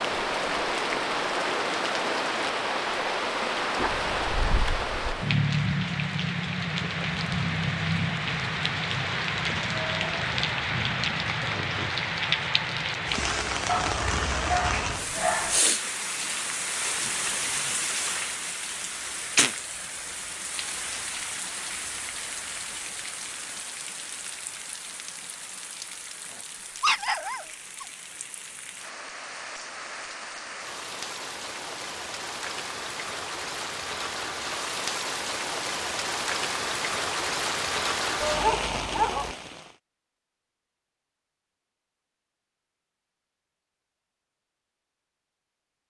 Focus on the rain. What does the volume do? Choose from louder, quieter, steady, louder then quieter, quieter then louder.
quieter then louder.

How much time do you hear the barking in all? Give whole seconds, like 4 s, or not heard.
6 s.